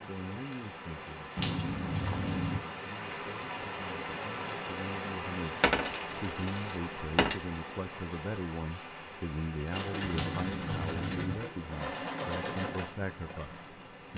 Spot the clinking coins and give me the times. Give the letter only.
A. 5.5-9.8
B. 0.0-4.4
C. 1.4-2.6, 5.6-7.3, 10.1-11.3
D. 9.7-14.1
C.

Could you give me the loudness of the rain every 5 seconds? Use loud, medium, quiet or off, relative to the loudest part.
loud, loud, medium.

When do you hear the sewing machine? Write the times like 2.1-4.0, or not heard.
9.7-14.1.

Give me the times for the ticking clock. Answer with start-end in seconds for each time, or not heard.
not heard.